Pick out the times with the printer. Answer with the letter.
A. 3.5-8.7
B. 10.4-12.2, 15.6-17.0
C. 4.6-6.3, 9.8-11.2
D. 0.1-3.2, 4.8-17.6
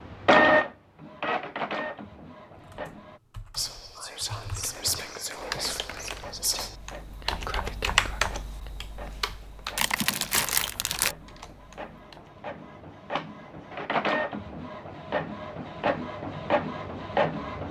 D.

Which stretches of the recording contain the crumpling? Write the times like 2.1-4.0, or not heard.
4.6-6.3, 9.8-11.2.